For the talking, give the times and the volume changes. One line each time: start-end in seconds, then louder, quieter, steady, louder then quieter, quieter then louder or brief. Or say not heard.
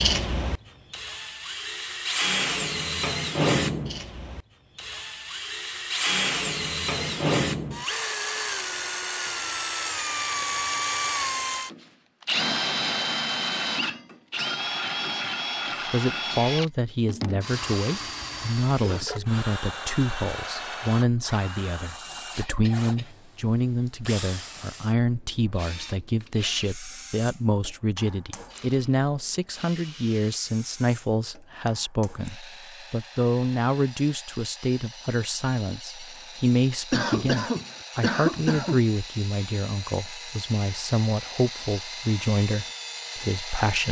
15.8-43.8 steady.